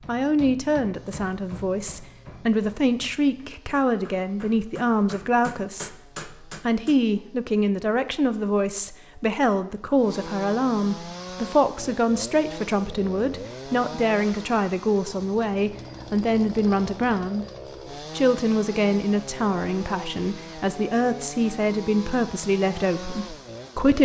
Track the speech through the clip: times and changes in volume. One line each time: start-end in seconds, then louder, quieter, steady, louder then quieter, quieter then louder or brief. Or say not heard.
0.1-23.9 steady.